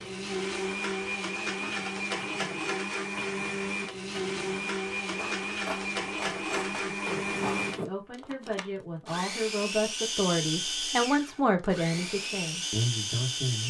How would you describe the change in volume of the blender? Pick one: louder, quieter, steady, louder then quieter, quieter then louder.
steady.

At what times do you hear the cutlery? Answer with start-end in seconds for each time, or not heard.
1.4-7.8.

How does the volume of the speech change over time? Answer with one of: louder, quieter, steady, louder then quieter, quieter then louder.
louder then quieter.